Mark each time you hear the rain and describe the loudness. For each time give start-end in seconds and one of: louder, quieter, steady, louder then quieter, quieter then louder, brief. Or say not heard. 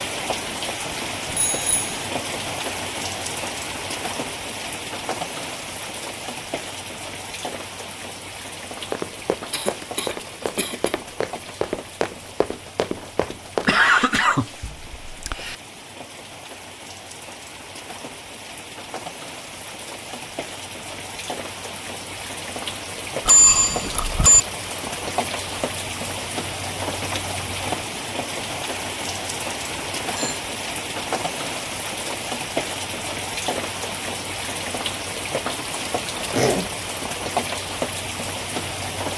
0.0-39.1 quieter then louder.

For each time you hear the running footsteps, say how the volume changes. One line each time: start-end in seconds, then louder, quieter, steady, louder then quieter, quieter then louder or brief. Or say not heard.
8.8-14.0 louder.